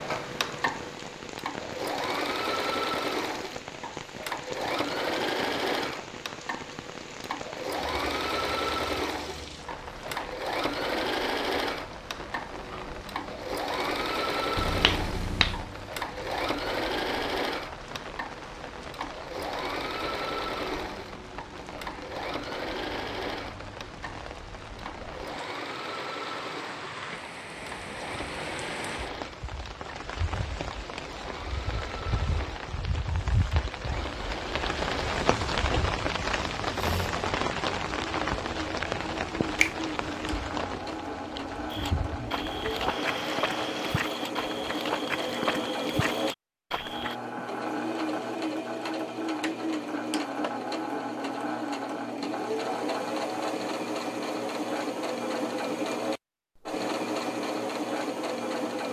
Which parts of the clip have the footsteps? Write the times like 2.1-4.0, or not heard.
41.7-47.1.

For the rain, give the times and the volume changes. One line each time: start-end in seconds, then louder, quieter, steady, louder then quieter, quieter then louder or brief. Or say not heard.
0.0-44.1 louder.